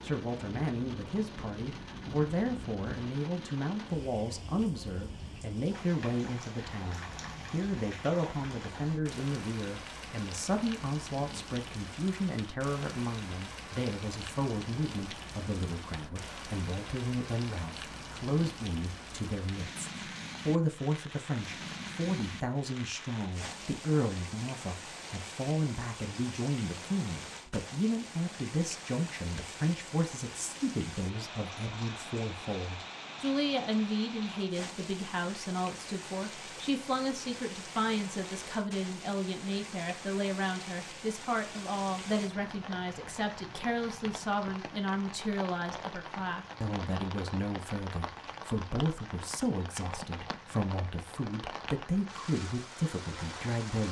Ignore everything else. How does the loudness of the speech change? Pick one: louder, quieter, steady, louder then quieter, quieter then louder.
steady.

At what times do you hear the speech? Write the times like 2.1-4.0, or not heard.
0.0-53.8.